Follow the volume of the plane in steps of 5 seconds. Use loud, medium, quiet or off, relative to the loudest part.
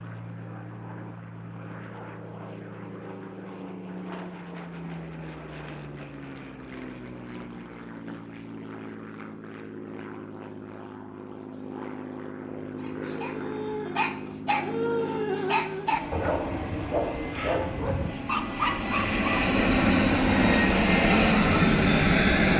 quiet, quiet, quiet, medium, loud.